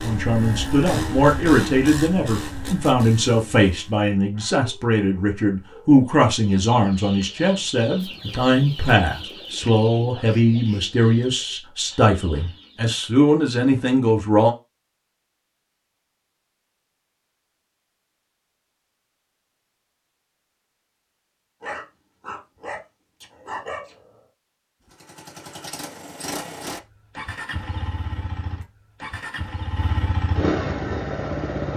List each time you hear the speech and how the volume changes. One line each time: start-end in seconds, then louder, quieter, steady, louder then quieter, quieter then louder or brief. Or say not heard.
0.0-14.5 steady.